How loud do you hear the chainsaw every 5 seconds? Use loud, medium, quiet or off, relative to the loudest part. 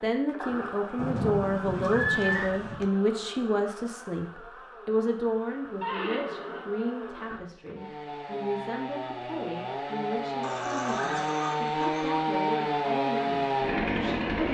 quiet, medium, loud.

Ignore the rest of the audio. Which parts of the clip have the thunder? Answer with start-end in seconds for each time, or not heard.
0.9-2.9.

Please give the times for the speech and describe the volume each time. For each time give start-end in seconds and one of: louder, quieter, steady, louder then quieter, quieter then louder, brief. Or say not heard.
0.0-14.5 quieter.